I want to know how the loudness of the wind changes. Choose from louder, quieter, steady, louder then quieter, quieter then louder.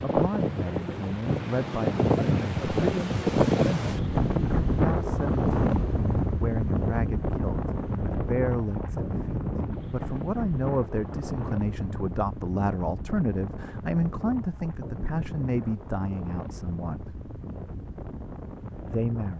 quieter.